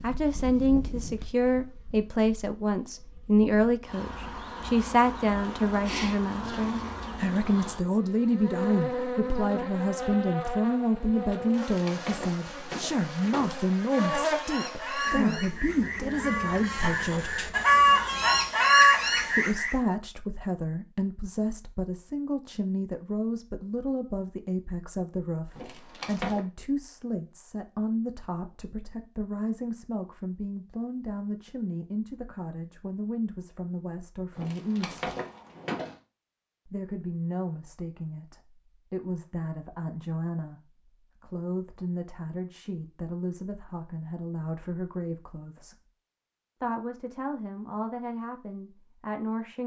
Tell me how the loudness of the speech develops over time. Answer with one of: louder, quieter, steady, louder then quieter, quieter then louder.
quieter.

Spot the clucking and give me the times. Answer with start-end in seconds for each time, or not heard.
13.8-19.8.